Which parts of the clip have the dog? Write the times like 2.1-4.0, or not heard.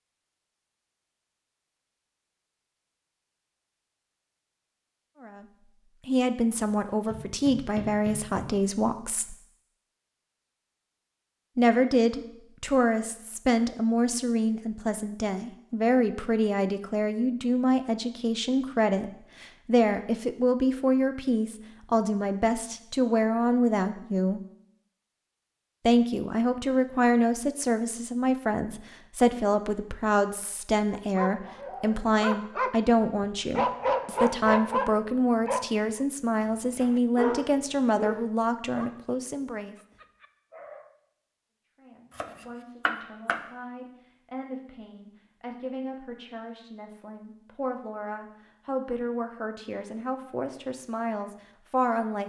30.9-41.0.